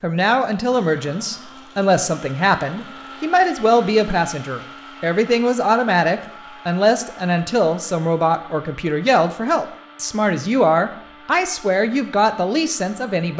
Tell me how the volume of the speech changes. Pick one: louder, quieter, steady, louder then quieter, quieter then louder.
steady.